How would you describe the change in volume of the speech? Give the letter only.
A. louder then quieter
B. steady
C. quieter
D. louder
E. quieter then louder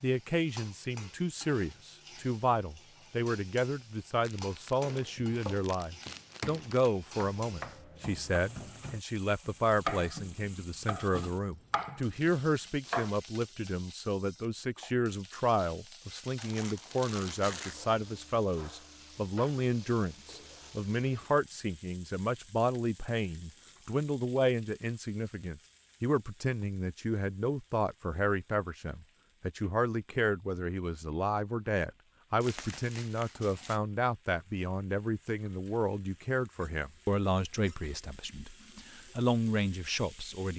B.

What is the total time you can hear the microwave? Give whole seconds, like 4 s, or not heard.
not heard.